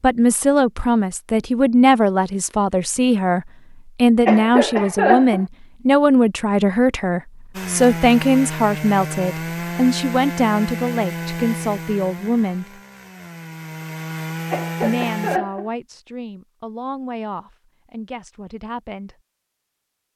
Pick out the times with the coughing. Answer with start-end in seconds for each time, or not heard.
4.2-5.5, 14.5-15.7.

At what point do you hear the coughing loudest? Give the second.
5 s.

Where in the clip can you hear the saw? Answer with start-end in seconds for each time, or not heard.
7.5-15.4.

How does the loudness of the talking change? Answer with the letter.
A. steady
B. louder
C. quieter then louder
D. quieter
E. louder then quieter
D.